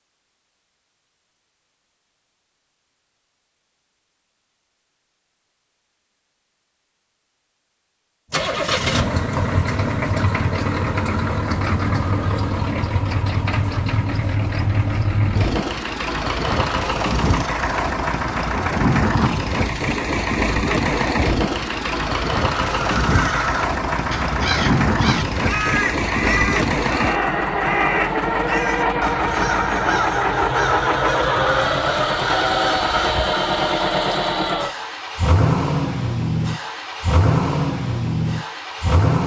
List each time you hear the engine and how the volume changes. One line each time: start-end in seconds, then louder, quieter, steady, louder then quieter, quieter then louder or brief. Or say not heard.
8.3-39.2 steady.